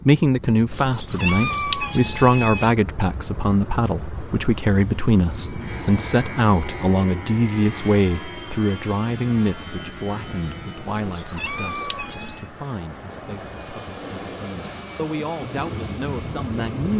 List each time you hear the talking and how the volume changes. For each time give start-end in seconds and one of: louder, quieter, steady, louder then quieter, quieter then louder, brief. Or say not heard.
0.1-16.9 quieter.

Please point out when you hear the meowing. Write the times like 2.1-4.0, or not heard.
0.7-2.7, 10.8-12.5.